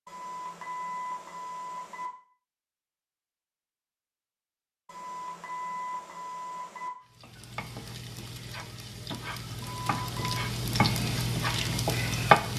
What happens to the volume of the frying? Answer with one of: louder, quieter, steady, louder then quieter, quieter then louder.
louder.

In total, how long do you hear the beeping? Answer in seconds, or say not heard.
5 s.